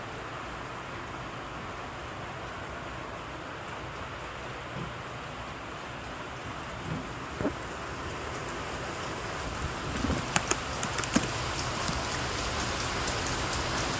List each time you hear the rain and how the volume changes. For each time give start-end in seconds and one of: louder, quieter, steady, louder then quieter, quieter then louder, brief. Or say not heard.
0.0-13.9 louder.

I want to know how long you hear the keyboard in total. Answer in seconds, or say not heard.
2 s.